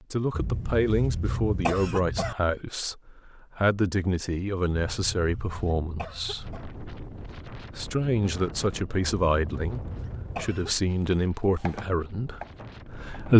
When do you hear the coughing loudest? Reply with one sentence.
The loudest moment of the coughing is at 2 seconds.